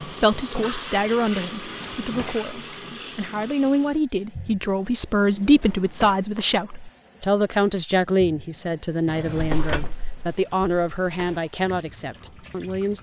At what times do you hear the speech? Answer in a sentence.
You can hear the speech from 0.1 to 12.9 s.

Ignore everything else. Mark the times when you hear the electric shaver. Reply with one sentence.
You can't hear the electric shaver here.